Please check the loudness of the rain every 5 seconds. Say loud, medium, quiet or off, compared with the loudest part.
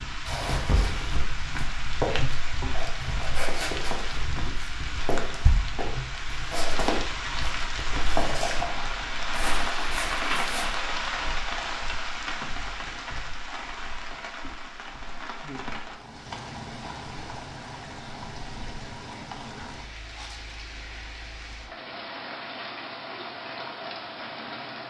loud, loud, loud, medium, medium.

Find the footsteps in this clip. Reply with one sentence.
The footsteps can be heard from 0.2 to 10.7 s.